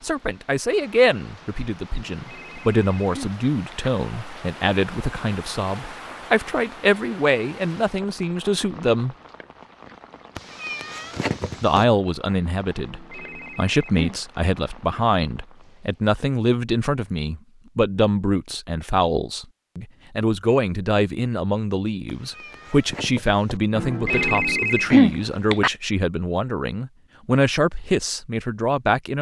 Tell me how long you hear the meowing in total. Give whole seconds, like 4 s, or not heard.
3 s.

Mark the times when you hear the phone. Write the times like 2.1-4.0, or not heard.
2.1-3.9, 12.8-14.2, 23.8-25.7.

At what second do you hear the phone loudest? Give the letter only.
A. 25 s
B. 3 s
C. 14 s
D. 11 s
A.